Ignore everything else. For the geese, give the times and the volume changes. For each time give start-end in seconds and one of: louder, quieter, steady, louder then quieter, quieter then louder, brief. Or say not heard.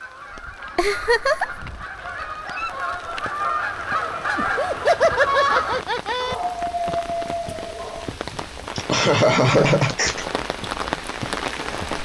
0.0-5.8 louder.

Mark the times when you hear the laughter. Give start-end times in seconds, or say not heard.
0.8-1.6, 4.3-6.3, 8.3-10.2.